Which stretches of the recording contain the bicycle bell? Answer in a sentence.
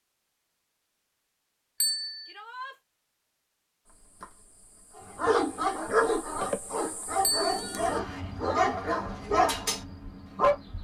You can hear the bicycle bell from 1.8 to 2.4 s and from 7.2 to 7.8 s.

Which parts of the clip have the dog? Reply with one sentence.
The dog can be heard from 5.0 to 10.6 s.